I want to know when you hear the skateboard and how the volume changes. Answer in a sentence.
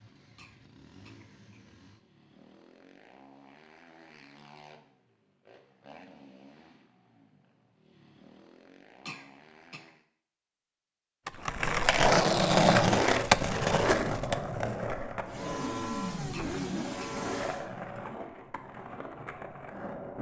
You can hear the skateboard from 11.2 to 20.1 s, getting quieter.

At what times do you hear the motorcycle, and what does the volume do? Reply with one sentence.
You can hear the motorcycle from 0.0 to 10.1 s, at a steady volume; and briefly from 15.2 to 17.6 s.